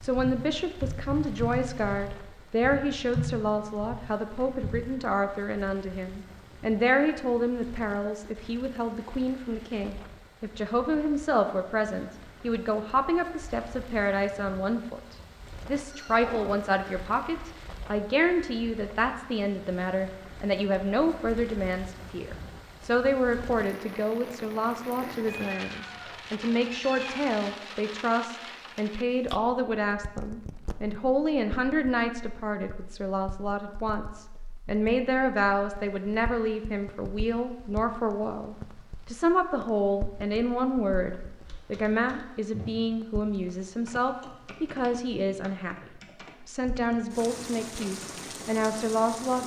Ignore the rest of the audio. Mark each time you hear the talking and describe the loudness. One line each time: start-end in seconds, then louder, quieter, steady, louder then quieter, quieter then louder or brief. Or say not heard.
0.0-49.4 steady.